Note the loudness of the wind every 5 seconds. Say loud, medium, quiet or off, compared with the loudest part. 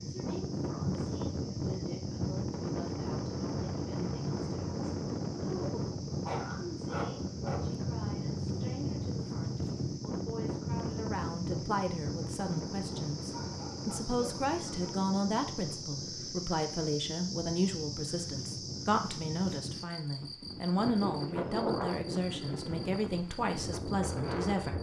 loud, loud, loud, medium, loud.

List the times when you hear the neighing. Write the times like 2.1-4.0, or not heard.
not heard.